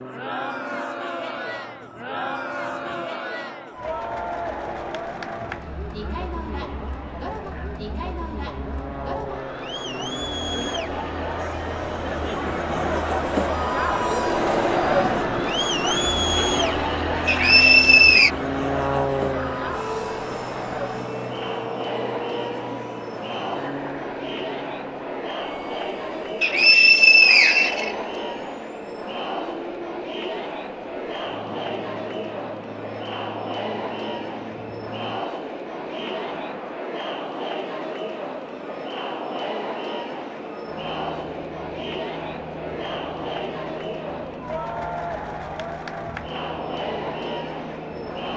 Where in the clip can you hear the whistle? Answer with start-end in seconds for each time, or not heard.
17.2-18.3, 26.4-27.9.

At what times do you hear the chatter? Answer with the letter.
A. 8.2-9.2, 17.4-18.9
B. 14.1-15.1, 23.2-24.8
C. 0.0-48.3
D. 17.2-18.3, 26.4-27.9
C.